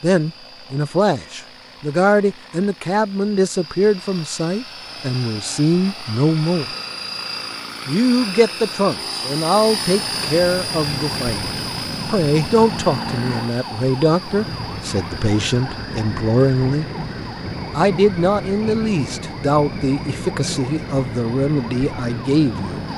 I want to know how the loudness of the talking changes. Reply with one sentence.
The volume of the talking stays about the same.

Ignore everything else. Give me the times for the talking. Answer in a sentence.
The talking can be heard from 0.0 to 6.8 s, from 7.8 to 16.9 s and from 17.8 to 22.9 s.